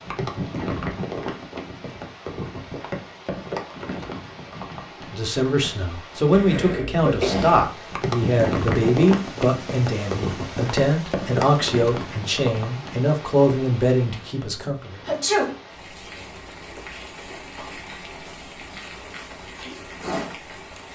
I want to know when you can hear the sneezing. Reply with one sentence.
The sneezing can be heard from 6.3 to 7.7 s and from 15.1 to 15.6 s.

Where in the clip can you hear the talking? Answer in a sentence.
You can hear the talking from 5.1 to 15.0 s.